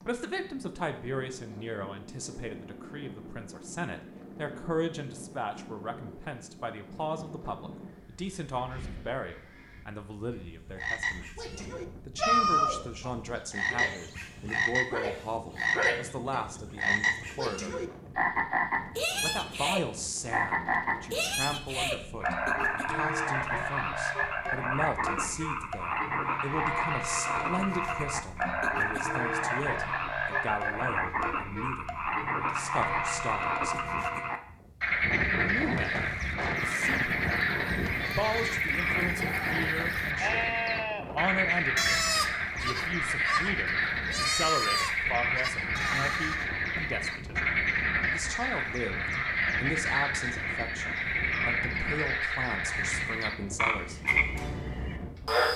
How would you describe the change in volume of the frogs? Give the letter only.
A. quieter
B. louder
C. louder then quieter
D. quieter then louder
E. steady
E.